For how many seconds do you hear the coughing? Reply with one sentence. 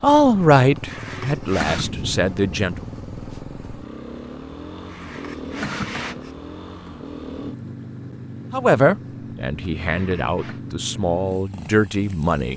You can hear the coughing for 4 seconds altogether.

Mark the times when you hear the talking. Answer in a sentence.
You can hear the talking from 0.0 to 2.8 s and from 8.5 to 12.5 s.